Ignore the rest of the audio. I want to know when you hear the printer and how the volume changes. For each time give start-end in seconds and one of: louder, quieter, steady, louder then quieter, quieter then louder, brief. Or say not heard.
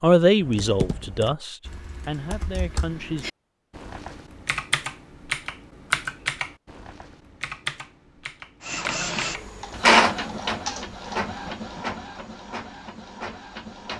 8.7-13.9 quieter.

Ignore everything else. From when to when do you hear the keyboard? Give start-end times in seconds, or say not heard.
0.4-11.2.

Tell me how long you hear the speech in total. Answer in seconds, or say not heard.
3 s.